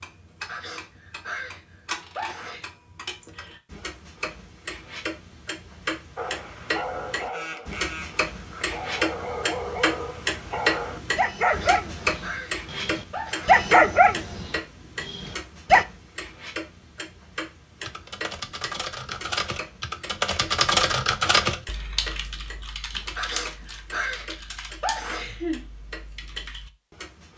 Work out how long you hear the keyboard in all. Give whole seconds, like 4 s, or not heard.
9 s.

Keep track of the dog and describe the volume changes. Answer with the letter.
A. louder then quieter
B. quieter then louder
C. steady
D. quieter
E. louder
E.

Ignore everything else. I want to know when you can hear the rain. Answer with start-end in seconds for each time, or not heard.
not heard.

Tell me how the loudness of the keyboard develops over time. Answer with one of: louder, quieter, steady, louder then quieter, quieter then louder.
louder then quieter.